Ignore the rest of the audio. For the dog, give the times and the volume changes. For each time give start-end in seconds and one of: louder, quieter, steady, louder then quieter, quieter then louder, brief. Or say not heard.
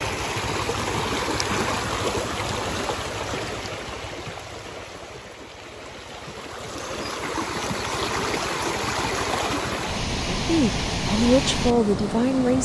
not heard.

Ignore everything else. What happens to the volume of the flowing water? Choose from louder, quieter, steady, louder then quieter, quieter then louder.
quieter then louder.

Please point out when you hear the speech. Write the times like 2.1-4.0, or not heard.
10.2-12.5.